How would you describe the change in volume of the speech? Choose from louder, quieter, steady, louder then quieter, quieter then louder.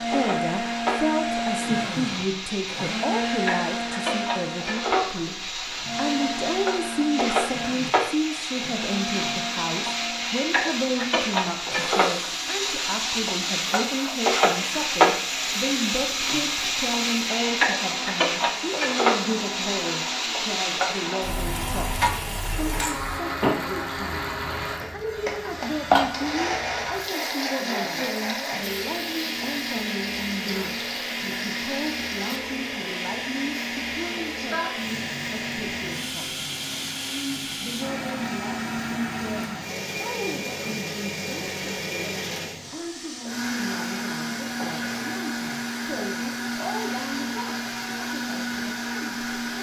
quieter.